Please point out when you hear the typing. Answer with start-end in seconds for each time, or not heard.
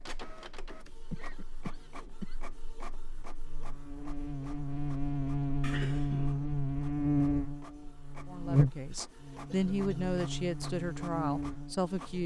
not heard.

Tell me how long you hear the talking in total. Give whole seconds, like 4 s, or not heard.
4 s.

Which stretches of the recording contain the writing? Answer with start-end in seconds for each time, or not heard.
not heard.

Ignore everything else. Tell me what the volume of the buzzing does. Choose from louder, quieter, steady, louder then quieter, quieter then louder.
louder then quieter.